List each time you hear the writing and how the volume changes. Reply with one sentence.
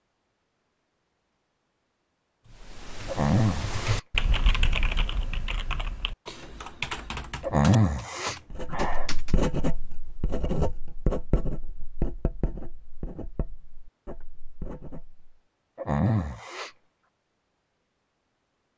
The writing can be heard from 8.5 to 15.3 s, getting quieter.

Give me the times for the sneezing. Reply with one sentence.
You can hear the sneezing from 3.0 to 4.0 s, from 7.4 to 9.1 s and from 15.8 to 16.8 s.